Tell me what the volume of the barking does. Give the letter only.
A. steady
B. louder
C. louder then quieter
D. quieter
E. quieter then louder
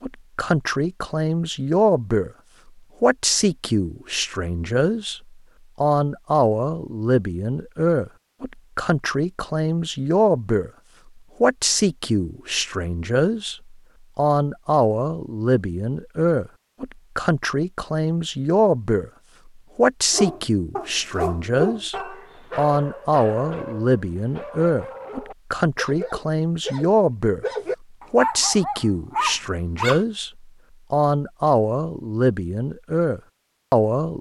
E.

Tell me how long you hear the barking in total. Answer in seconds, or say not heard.
10 s.